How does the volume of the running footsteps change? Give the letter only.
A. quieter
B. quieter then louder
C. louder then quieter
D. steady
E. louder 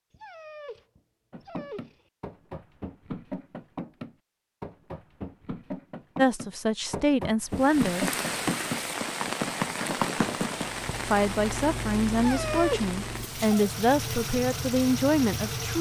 E.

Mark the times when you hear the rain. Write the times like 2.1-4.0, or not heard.
7.5-15.7.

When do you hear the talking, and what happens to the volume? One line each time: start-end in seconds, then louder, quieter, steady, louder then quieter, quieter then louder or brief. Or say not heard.
6.2-8.1 brief
11.1-15.7 steady.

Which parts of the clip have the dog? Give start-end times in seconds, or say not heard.
0.1-2.0, 12.2-13.7.